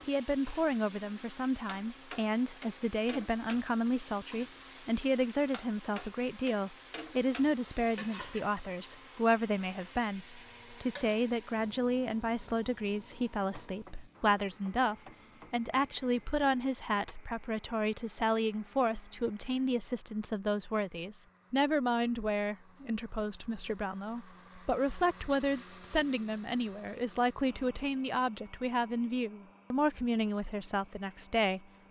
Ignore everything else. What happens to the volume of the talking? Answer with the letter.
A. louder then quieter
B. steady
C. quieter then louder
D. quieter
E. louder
B.